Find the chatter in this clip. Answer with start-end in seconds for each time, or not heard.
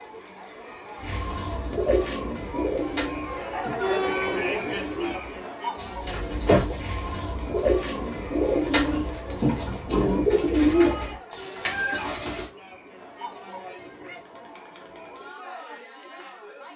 0.0-16.7.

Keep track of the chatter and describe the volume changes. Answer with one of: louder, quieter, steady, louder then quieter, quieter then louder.
louder then quieter.